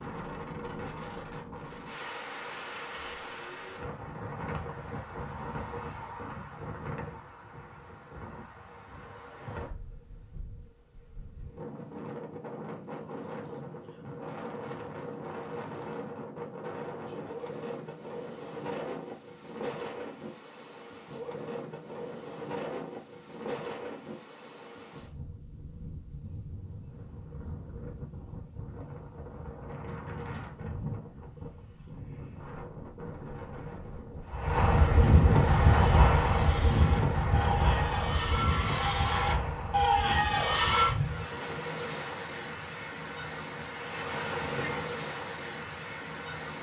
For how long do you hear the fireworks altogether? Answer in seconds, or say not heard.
not heard.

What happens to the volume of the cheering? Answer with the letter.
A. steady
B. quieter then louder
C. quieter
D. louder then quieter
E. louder
E.